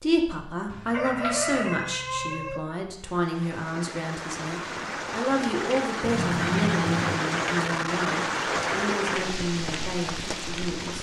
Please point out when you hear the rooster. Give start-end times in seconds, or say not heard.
0.9-2.6.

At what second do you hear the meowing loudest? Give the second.
7 s.